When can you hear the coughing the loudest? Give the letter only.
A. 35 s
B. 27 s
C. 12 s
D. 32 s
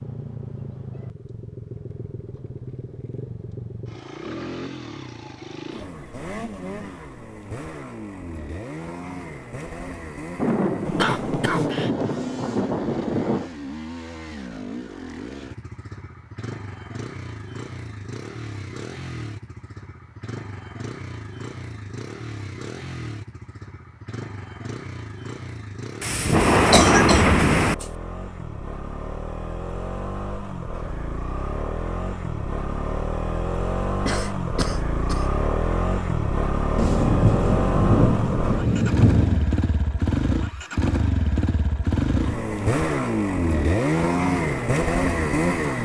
B.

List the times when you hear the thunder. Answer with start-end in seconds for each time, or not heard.
10.3-13.5, 26.0-27.8, 36.8-39.5.